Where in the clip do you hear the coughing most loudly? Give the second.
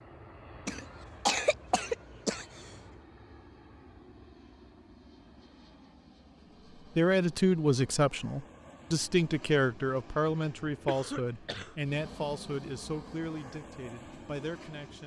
1 s.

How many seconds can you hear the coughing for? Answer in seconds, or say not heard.
3 s.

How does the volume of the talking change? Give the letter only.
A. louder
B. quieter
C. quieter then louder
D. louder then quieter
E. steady
B.